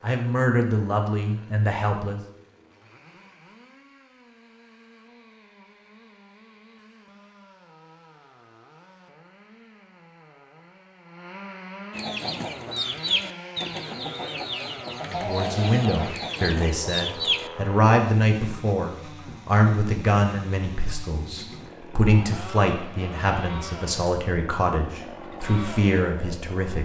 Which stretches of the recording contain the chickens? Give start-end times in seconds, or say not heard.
11.9-17.5.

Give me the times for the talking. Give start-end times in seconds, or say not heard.
0.0-2.2, 15.1-26.8.